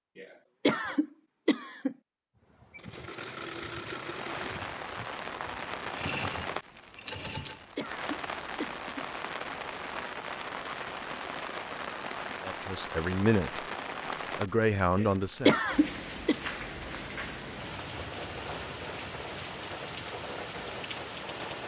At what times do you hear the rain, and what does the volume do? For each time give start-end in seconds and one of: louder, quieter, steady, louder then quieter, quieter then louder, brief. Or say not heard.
3.8-21.6 steady.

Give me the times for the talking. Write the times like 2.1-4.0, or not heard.
12.4-13.7, 14.3-15.6.